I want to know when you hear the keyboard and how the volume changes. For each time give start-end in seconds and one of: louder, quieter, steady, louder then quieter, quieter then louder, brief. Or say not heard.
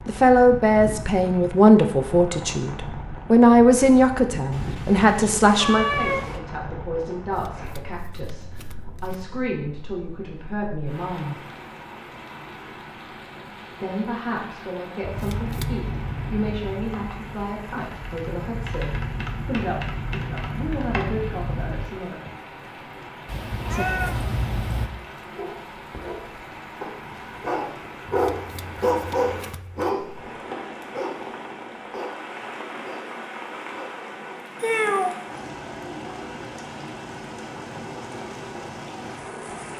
15.1-21.9 quieter then louder.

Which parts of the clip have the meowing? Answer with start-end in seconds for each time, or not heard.
4.5-6.4, 23.2-24.9, 34.6-35.2.